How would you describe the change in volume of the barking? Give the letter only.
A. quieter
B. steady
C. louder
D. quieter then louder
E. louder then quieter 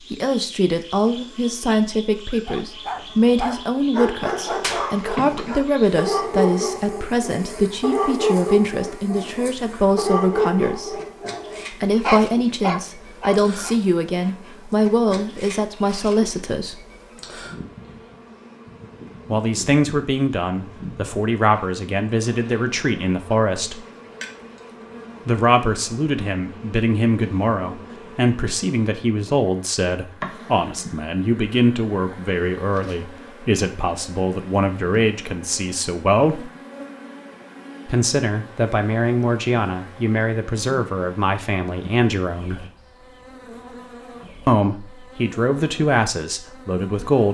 B.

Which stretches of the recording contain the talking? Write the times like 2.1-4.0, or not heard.
0.1-11.0, 11.7-16.8, 19.2-23.9, 25.2-36.5, 37.9-42.6, 44.5-47.2.